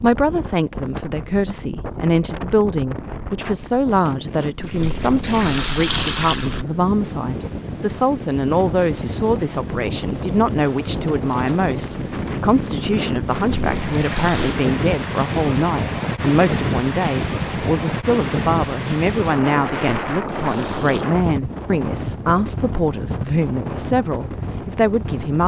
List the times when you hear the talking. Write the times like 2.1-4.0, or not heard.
0.0-25.4.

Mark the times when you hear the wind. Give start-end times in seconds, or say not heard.
0.0-25.4.